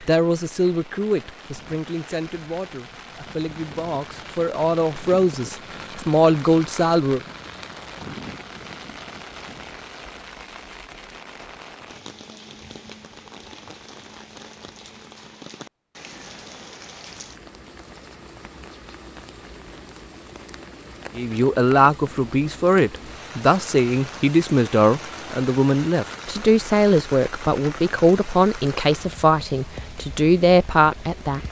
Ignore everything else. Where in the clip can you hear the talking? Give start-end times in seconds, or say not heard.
0.1-7.2, 21.1-31.4.